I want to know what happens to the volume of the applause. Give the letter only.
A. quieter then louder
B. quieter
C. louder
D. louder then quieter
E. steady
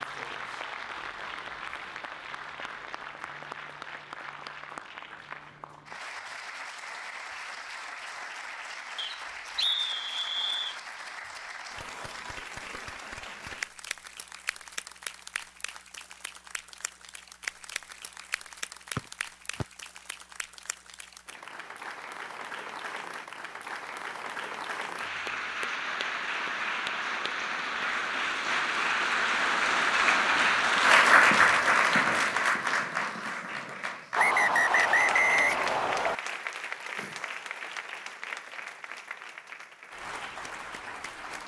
D.